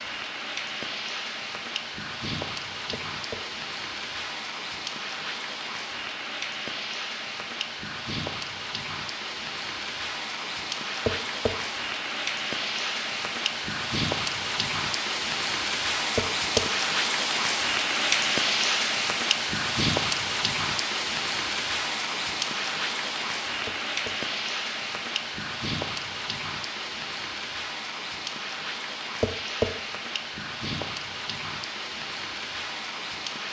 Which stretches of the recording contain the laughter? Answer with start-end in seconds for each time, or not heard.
not heard.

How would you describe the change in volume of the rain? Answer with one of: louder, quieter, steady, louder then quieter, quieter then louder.
louder then quieter.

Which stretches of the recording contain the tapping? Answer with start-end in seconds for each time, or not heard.
2.9-3.4, 11.1-11.5, 16.1-16.6, 23.6-24.1, 29.2-29.7.